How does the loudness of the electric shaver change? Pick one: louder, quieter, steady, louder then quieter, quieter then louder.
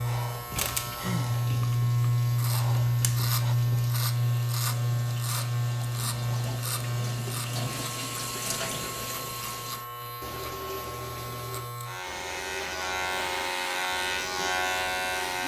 quieter then louder.